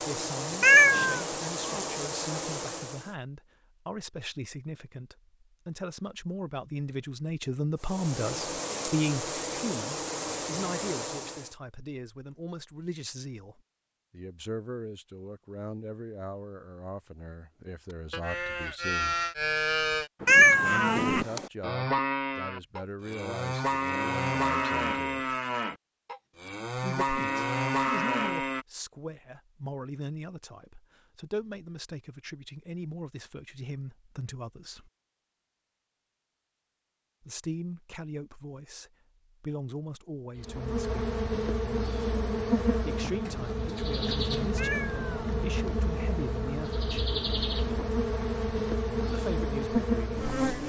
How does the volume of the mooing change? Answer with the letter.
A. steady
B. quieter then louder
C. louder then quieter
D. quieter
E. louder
A.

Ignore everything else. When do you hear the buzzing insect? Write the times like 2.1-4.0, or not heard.
0.0-3.1, 7.8-11.6, 40.4-50.6.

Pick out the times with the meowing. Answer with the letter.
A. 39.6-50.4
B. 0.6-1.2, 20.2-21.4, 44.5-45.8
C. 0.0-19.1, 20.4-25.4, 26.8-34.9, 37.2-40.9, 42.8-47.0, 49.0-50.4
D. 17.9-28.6
B.